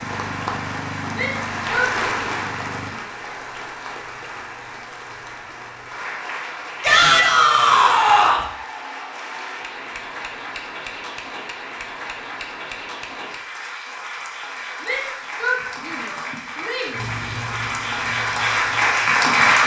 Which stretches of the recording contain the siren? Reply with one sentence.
The siren can't be heard in this clip.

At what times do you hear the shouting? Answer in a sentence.
The shouting can be heard from 1.1 to 1.9 s, from 6.8 to 8.4 s and from 14.8 to 17.0 s.